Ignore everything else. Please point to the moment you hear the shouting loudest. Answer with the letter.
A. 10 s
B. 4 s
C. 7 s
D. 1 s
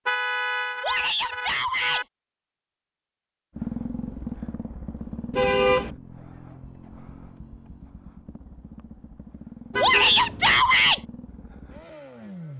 A.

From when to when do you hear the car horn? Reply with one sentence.
You can hear the car horn from 0.1 to 2.0 s, from 5.3 to 5.9 s and from 9.7 to 10.6 s.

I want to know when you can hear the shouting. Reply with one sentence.
You can hear the shouting from 0.8 to 2.0 s and from 9.8 to 11.0 s.